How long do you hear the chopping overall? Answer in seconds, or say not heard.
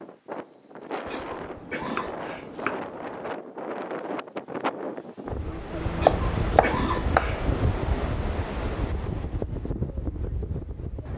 3 s.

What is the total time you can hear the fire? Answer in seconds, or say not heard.
not heard.